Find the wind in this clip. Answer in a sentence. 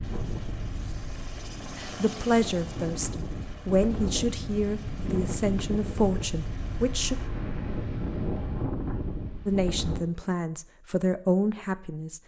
The wind can be heard from 0.0 to 10.1 s.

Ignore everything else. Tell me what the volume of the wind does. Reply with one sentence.
The volume of the wind goes up.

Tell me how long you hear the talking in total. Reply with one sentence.
You can hear the talking for 8 seconds altogether.